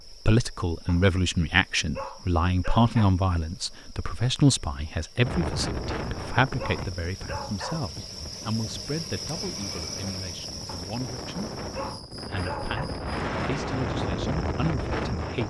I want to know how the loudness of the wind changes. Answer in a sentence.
The volume of the wind goes down, then up.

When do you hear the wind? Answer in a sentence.
The wind can be heard from 5.2 to 15.4 s.